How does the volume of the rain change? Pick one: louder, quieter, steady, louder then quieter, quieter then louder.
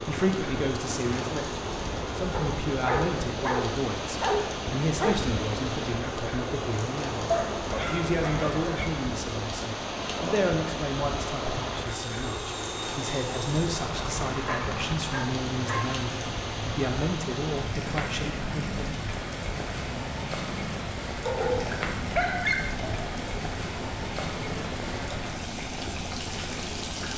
steady.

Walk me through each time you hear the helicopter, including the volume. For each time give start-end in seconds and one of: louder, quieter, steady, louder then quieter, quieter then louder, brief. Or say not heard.
0.0-27.1 steady.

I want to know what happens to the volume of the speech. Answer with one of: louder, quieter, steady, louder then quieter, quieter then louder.
steady.